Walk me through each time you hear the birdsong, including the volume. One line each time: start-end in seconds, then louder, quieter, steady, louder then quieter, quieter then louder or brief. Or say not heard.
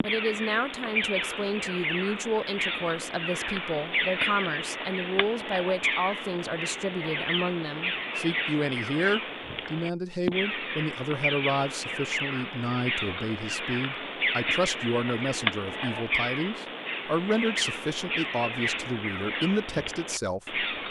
0.0-20.8 steady.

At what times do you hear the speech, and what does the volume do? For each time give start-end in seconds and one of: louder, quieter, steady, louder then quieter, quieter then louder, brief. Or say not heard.
0.0-20.6 steady.